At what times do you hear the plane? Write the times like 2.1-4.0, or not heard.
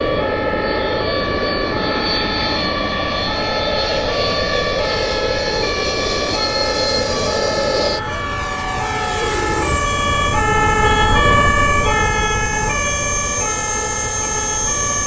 0.0-15.0.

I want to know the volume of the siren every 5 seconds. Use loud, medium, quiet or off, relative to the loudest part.
medium, medium, loud.